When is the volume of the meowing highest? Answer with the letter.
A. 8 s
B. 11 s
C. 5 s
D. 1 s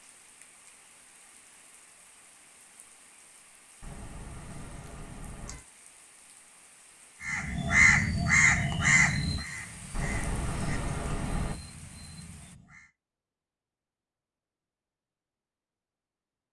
B.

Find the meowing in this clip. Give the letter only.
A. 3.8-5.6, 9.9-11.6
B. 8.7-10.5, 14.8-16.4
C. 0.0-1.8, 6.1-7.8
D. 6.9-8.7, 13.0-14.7
A.